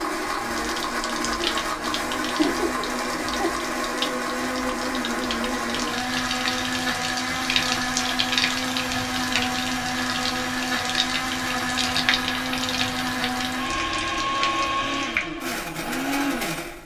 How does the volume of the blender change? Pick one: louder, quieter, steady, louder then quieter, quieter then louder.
steady.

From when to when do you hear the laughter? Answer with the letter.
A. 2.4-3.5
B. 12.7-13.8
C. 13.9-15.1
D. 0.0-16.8
A.